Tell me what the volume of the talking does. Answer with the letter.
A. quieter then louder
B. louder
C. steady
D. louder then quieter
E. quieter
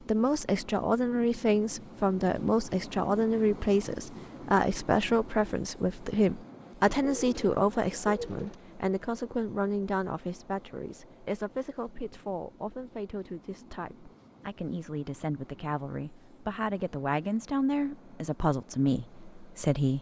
A.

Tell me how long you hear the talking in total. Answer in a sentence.
The talking can be heard for 20 seconds in total.